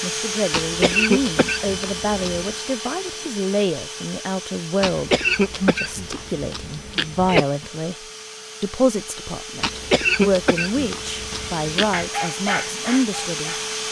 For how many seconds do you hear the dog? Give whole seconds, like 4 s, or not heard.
2 s.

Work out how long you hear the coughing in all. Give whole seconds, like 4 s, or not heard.
7 s.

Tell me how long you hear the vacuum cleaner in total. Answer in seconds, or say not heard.
14 s.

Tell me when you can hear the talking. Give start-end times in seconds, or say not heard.
0.0-8.0, 8.6-13.6.